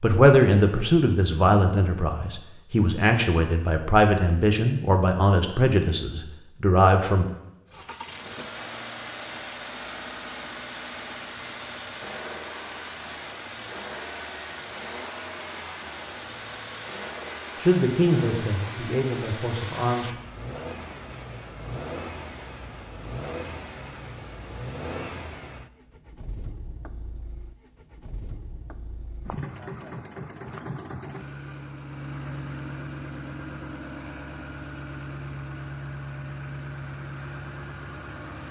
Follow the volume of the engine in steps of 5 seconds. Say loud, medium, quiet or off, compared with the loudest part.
off, loud, loud, loud, loud, medium, loud, loud.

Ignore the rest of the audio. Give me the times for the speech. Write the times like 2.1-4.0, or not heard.
0.0-7.2, 17.6-20.1.